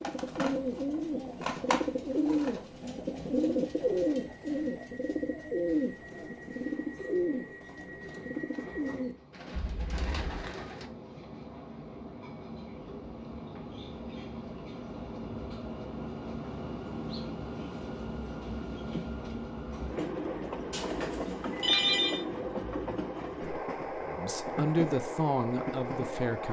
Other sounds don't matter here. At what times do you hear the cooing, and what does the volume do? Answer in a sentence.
The cooing can be heard from 0.0 to 10.9 s, getting quieter.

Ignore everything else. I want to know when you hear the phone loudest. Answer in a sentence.
The loudest moment of the phone is at 22 seconds.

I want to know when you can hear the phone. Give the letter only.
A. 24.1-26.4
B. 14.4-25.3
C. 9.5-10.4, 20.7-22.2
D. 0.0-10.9
C.